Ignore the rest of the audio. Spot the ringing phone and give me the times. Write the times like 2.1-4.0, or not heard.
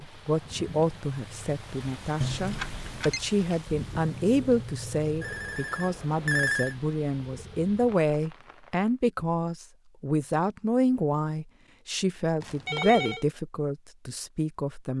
2.2-3.2, 5.2-6.8, 12.4-13.2.